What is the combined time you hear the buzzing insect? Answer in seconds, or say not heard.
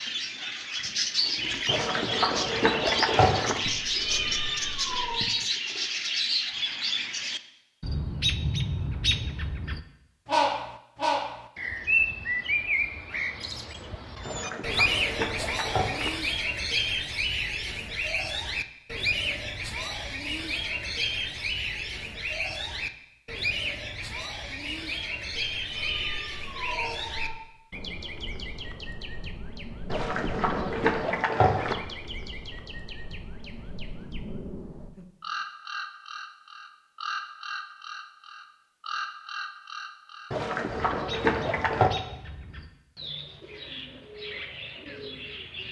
not heard.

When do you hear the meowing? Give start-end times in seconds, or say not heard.
3.8-5.2, 25.5-27.4.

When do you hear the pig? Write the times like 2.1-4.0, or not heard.
1.6-3.5, 14.2-16.1, 29.9-31.8, 40.3-42.0.